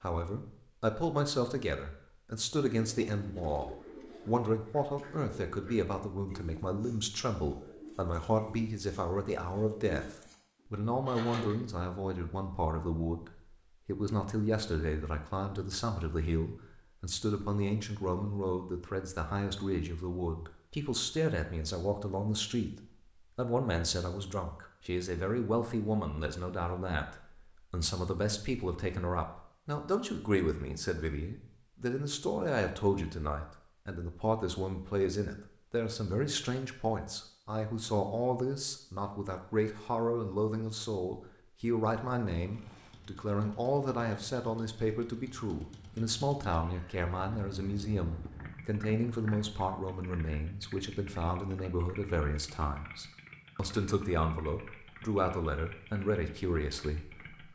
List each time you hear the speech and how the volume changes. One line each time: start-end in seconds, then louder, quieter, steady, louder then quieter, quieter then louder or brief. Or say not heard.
0.0-57.4 steady.